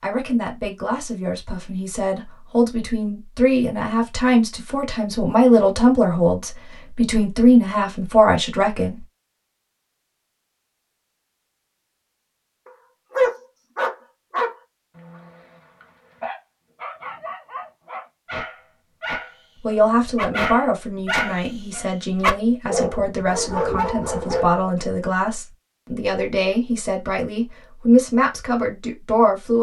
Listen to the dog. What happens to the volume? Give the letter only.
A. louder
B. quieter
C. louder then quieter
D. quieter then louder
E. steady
D.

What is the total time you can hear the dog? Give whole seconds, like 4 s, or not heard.
12 s.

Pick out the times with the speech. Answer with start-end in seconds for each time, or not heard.
0.0-9.0, 19.6-29.5.